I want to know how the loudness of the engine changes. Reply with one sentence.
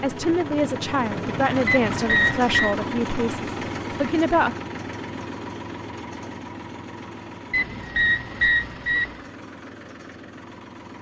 The loudness of the engine goes down.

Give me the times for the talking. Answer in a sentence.
You can hear the talking from 0.0 to 4.5 s.